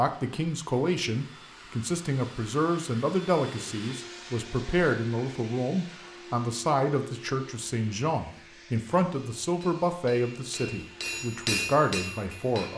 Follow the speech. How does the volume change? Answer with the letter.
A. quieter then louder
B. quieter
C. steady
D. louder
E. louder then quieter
C.